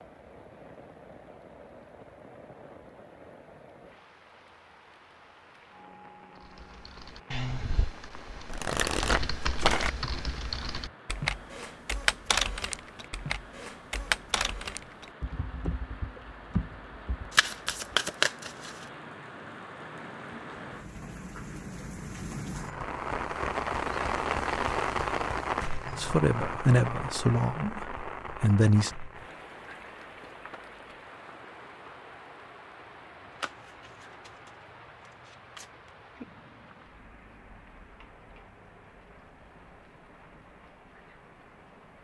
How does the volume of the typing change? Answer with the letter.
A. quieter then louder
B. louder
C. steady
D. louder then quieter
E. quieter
D.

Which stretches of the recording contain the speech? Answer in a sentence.
The speech can be heard from 25.9 to 28.9 s.